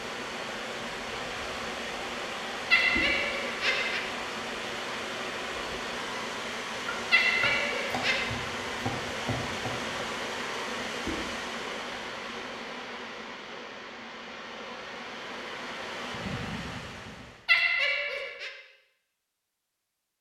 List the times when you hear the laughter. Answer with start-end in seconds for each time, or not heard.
2.7-4.0, 7.1-8.3, 17.4-18.5.